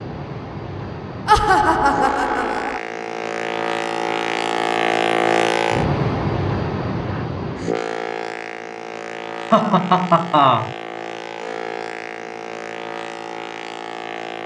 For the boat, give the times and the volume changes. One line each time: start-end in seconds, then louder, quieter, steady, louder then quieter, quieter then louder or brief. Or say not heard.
0.0-14.4 louder then quieter.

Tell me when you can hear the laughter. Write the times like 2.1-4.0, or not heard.
1.2-2.8, 9.5-10.8.